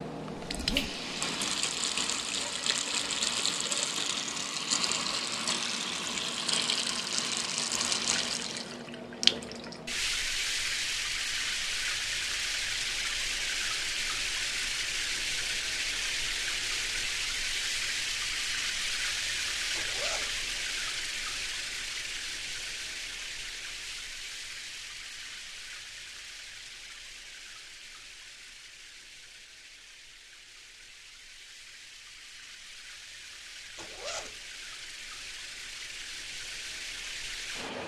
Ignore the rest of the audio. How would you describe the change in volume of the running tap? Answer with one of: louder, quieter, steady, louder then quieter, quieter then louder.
quieter.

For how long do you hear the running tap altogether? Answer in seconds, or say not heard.
38 s.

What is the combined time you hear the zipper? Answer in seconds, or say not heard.
2 s.